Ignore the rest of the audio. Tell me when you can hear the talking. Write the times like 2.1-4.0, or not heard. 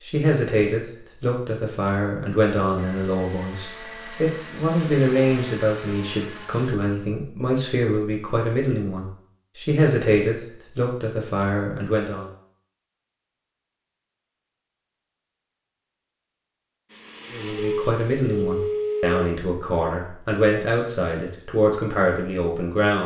0.0-12.3, 17.3-23.0.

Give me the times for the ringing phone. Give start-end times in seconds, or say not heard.
17.6-19.2.